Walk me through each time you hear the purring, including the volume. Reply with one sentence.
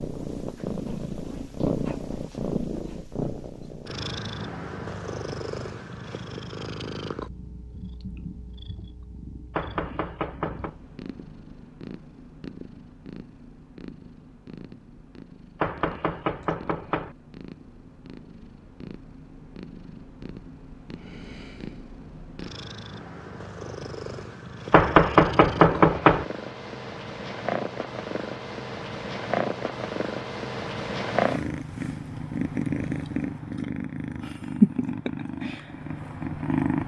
You can hear the purring from 0.0 to 36.8 s, getting quieter then louder.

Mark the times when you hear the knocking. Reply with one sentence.
You can hear the knocking from 9.5 to 10.8 s, from 15.6 to 17.1 s and from 24.7 to 26.2 s.